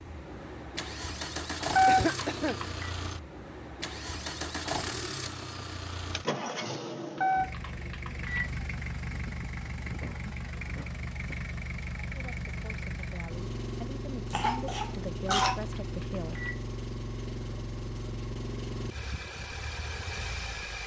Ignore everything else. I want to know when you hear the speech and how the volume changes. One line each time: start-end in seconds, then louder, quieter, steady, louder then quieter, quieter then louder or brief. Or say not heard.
12.1-16.4 louder.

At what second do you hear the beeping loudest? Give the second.
2 s.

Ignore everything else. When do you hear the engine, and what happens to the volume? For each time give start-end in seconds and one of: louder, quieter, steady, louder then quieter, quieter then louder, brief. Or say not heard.
0.0-20.8 steady.